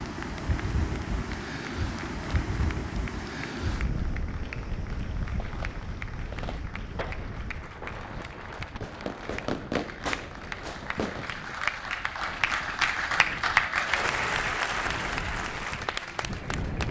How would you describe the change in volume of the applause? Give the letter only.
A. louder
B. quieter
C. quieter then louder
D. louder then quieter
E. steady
A.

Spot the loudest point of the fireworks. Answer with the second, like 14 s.
10 s.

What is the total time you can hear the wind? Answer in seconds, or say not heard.
17 s.